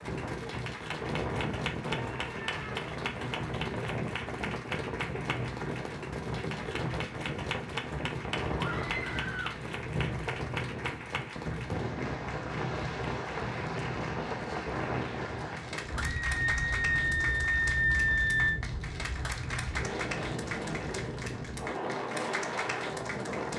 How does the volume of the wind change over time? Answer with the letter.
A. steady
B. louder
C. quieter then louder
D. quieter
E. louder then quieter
A.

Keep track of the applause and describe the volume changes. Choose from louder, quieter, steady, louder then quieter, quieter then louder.
steady.